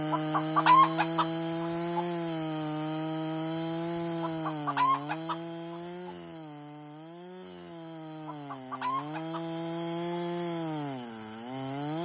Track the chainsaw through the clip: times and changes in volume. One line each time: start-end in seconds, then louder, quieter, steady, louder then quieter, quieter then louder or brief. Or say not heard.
0.0-12.0 quieter then louder.